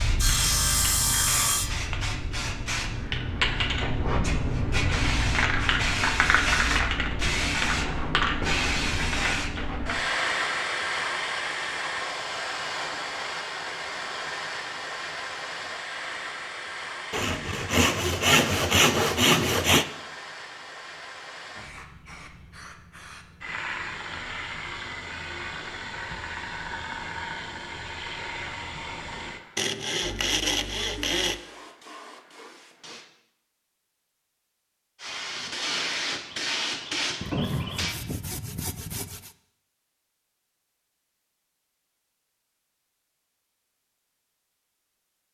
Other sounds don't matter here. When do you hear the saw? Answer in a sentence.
You can hear the saw from 0.1 to 1.9 s, from 17.1 to 19.9 s, from 29.6 to 31.4 s and from 37.2 to 39.4 s.